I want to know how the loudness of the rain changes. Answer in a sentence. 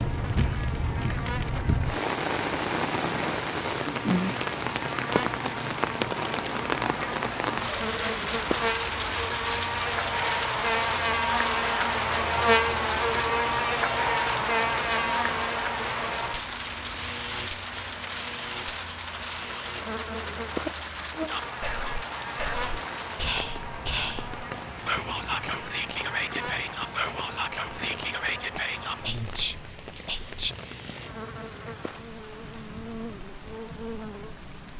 The loudness of the rain goes down.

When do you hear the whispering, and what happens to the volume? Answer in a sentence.
The whispering can be heard from 21.2 to 30.6 s, at a steady volume.